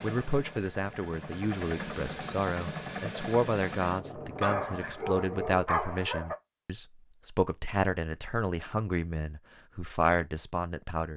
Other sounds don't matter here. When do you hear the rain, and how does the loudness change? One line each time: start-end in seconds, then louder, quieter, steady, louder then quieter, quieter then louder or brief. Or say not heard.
not heard.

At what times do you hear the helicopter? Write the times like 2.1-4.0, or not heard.
0.0-4.7.